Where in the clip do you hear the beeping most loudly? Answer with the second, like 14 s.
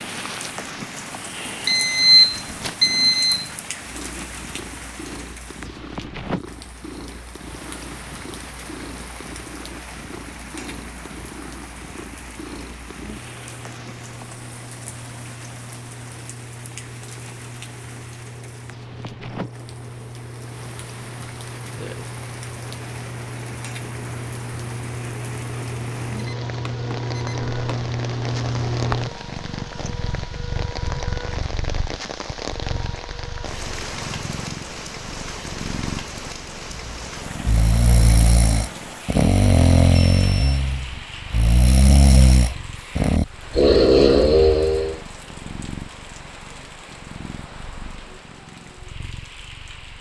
2 s.